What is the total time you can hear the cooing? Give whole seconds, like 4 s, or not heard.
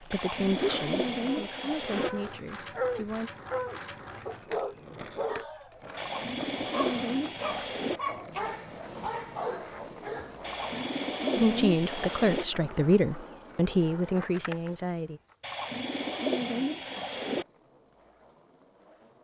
8 s.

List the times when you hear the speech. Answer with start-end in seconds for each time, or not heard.
0.0-3.3, 11.3-15.2.